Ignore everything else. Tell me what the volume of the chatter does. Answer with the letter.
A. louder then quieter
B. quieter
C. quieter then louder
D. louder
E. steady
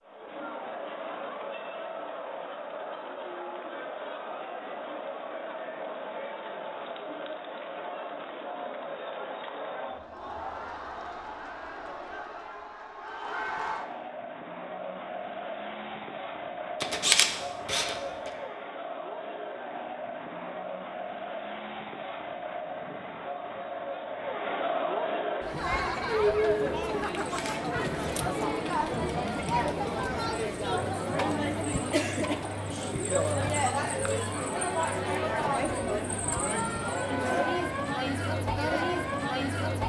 D.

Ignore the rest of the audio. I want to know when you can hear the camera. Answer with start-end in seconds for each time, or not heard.
16.8-18.3, 27.1-28.2.